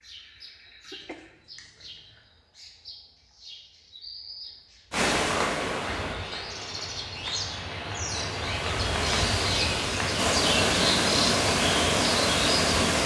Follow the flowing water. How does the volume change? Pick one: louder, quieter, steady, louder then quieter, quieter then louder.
quieter then louder.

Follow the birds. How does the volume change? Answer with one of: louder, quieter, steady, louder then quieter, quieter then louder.
louder.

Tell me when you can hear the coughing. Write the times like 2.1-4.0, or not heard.
0.8-2.2.